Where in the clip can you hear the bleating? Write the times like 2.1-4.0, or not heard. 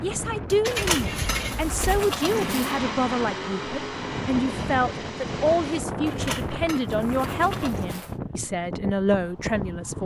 0.7-2.8, 6.0-8.2.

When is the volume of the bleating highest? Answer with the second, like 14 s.
1 s.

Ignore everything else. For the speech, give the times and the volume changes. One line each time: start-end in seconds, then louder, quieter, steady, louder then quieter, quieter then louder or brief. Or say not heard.
0.0-10.0 steady.